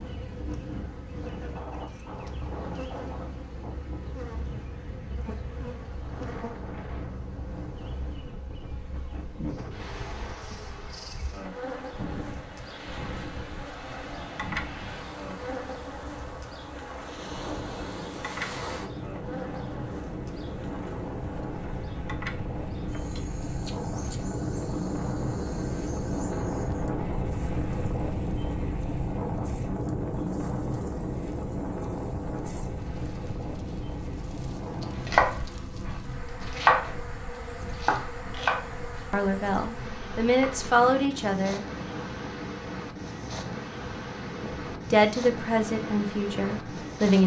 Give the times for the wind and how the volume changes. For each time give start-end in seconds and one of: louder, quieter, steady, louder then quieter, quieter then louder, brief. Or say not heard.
0.0-47.2 louder then quieter.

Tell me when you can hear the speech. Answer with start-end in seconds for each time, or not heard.
39.1-41.6, 44.4-47.2.